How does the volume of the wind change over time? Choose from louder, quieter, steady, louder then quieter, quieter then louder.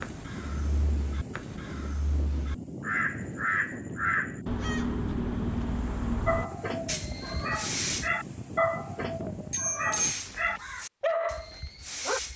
steady.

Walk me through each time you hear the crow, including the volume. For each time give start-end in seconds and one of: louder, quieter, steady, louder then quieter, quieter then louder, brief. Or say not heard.
0.0-8.1 louder then quieter
9.9-12.3 brief.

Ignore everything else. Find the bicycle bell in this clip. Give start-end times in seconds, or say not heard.
9.5-10.2.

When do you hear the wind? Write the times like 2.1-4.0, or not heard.
0.0-10.2.